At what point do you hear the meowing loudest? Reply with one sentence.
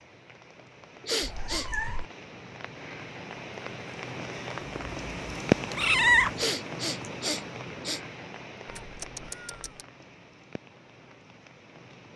The volume of the meowing peaks at 6 seconds.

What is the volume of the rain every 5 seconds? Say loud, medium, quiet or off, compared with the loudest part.
medium, loud, quiet.